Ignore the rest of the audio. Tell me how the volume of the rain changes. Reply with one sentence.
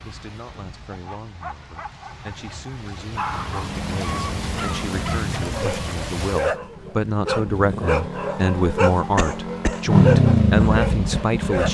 The volume of the rain goes up.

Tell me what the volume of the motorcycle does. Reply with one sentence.
The volume of the motorcycle goes up.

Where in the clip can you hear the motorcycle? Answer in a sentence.
You can hear the motorcycle from 3.1 to 11.6 s.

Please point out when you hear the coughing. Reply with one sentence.
The coughing can be heard from 9.2 to 9.8 s.